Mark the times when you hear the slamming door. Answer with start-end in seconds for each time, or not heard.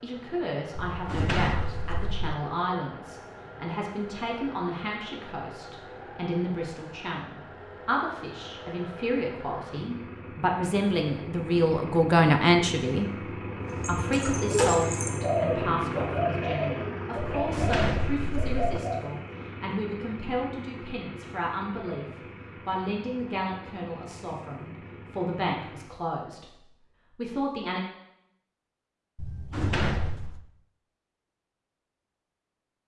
0.8-2.4, 17.1-18.8, 29.1-30.4.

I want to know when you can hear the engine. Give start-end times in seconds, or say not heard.
0.0-26.0.